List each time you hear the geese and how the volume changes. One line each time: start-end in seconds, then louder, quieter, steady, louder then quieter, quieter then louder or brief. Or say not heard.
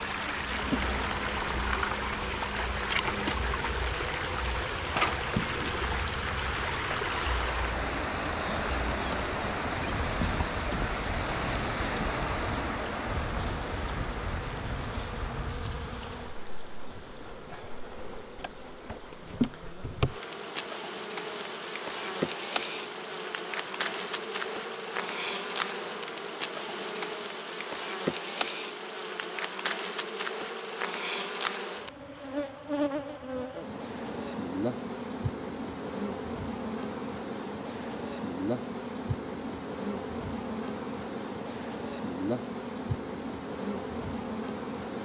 not heard.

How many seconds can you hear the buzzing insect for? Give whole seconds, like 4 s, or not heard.
45 s.